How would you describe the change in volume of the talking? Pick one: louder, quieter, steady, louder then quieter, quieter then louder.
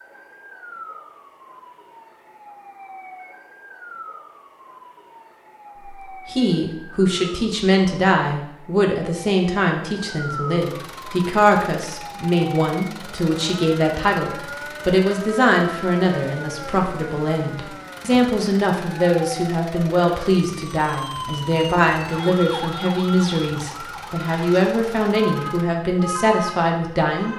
steady.